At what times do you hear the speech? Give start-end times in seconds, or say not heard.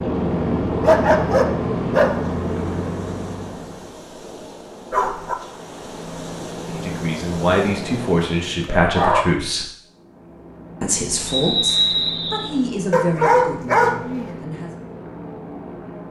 6.7-9.7, 10.8-14.8.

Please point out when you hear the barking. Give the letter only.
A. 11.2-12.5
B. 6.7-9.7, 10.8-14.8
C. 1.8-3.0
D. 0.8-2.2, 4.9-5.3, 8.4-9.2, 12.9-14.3
D.